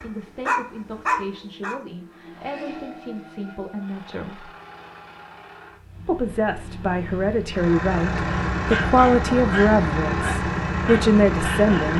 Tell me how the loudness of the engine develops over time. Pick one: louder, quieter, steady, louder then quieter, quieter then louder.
louder.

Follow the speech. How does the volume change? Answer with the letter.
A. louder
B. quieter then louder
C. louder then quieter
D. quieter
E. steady
A.